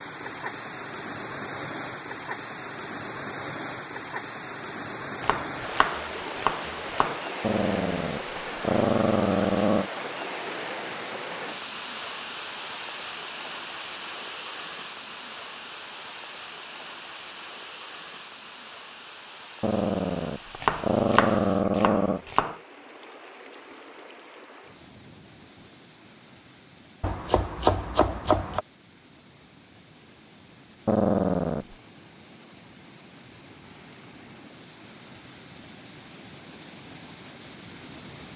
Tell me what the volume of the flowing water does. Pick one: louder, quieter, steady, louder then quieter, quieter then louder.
quieter.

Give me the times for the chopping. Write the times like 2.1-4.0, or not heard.
5.2-7.2, 20.6-22.6, 27.0-28.6.